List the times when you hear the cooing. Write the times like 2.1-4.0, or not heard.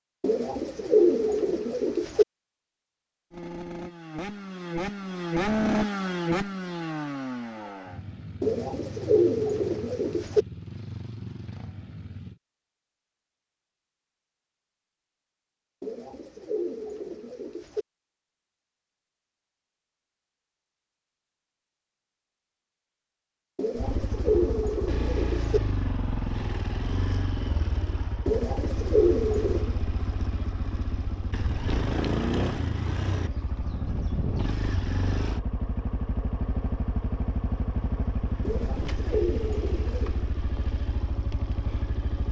0.2-2.2, 8.4-10.4, 15.8-17.9, 23.6-25.6, 28.2-29.8, 38.4-40.2.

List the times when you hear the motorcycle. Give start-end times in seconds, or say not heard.
3.3-12.4, 23.8-42.2.